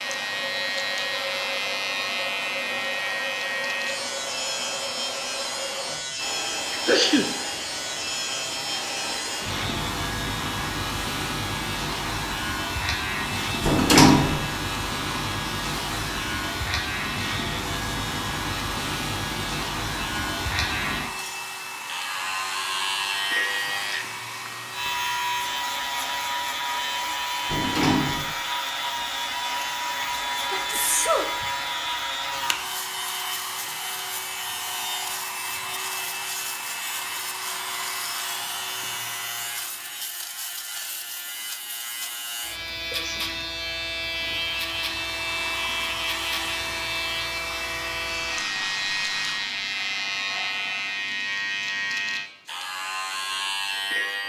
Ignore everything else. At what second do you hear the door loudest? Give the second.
14 s.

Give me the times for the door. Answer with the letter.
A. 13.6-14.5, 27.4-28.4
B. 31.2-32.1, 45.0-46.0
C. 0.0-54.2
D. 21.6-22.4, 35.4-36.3
A.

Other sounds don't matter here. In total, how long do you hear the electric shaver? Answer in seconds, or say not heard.
54 s.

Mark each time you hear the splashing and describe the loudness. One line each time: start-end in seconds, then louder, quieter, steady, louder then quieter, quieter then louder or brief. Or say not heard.
not heard.